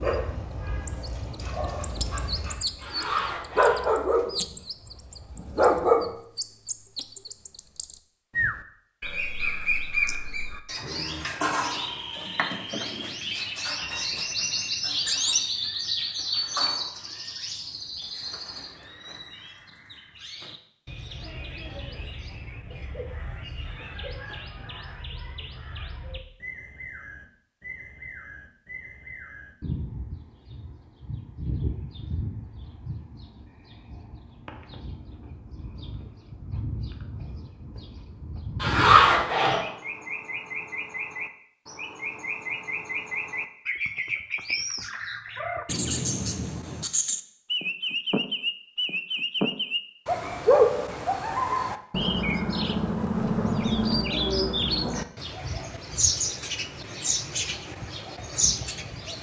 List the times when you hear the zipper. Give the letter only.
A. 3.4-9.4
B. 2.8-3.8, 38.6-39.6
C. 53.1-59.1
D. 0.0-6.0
B.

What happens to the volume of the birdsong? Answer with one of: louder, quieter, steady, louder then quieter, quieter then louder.
quieter then louder.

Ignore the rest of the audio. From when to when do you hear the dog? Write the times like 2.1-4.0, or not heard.
0.0-6.0.